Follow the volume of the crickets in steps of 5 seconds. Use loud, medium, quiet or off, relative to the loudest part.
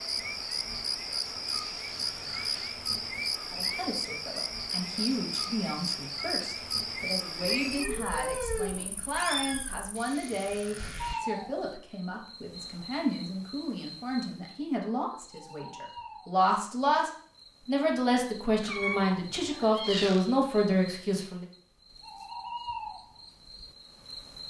loud, loud, medium, quiet, medium.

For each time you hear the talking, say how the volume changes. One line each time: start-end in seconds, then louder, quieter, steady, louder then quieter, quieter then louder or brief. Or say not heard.
3.5-21.4 louder.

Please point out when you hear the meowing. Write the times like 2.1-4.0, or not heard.
7.4-9.8, 18.6-20.6.